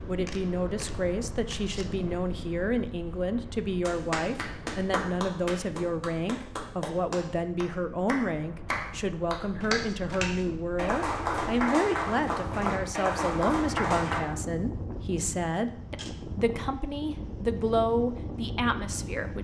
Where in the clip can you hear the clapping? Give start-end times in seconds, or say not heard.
3.8-14.2.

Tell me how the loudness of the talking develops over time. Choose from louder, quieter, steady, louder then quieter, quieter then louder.
steady.